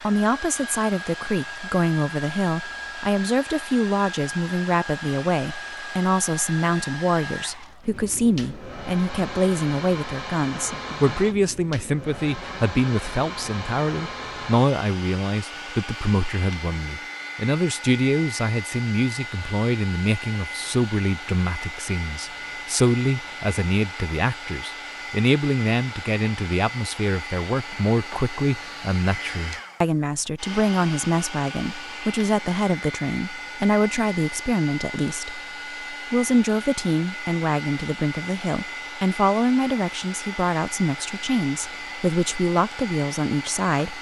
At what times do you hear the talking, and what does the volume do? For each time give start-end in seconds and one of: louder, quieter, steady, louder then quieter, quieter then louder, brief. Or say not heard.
0.0-43.9 steady.